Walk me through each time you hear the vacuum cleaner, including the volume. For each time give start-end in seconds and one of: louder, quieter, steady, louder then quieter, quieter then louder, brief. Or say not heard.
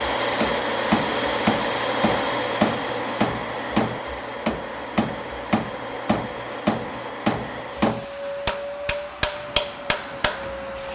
0.0-10.9 quieter.